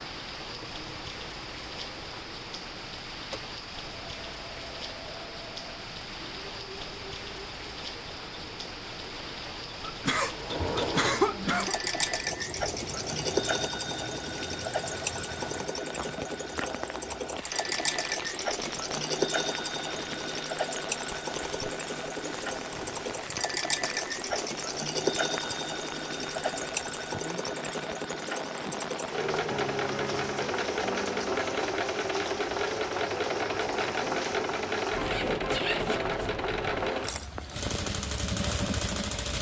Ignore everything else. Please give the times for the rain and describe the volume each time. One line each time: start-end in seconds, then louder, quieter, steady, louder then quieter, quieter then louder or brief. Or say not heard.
0.0-39.3 steady.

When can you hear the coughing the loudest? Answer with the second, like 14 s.
11 s.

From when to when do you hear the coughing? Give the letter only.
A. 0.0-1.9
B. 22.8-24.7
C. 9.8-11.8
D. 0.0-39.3
C.